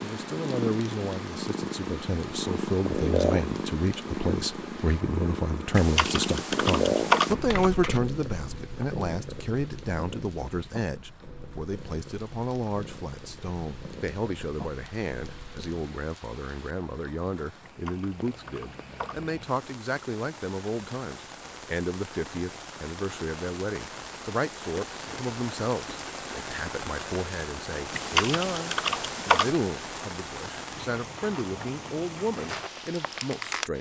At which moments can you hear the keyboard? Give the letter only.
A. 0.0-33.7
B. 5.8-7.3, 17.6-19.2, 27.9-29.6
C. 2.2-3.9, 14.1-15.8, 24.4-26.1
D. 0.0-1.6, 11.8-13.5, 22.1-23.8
B.